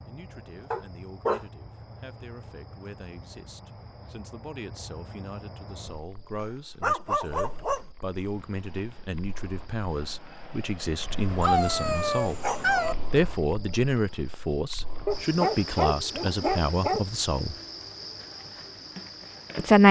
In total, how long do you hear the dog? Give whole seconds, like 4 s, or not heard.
5 s.